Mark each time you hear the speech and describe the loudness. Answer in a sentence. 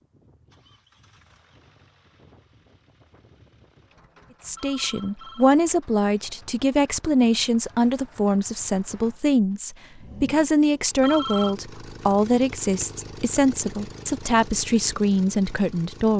You can hear the speech from 4.4 to 16.1 s, at a steady volume.